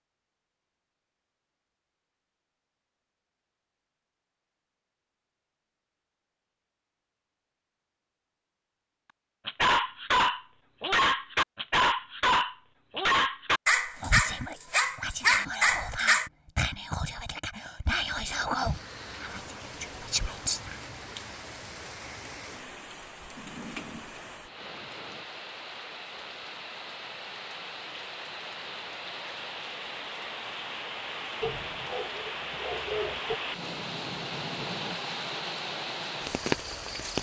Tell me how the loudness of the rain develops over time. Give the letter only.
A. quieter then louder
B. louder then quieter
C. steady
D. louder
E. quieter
D.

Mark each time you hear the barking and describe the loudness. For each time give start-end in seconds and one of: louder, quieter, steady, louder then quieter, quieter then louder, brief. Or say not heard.
9.4-16.3 steady
31.4-33.4 brief.